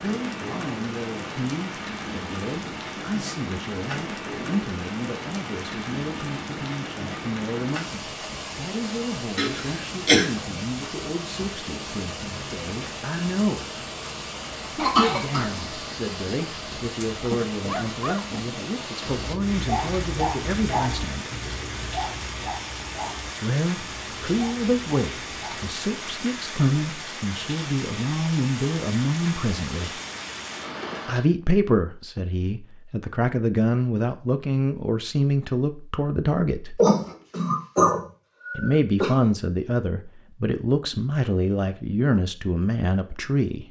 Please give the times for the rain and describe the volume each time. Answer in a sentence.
You can hear the rain from 0.0 to 31.2 s, at a steady volume.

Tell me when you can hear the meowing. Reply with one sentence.
You can't hear the meowing here.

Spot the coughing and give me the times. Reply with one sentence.
The coughing can be heard from 9.3 to 10.2 s, from 14.8 to 15.4 s and from 36.8 to 39.1 s.